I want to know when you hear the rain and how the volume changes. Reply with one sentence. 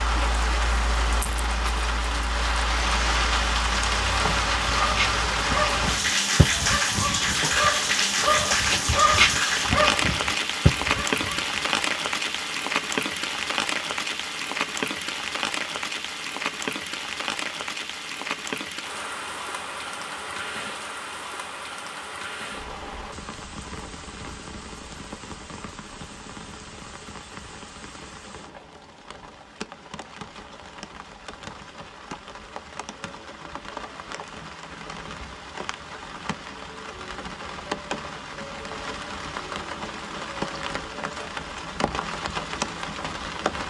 The rain can be heard from 0.0 to 43.6 s, getting quieter then louder.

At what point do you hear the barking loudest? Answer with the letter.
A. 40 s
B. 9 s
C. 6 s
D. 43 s
B.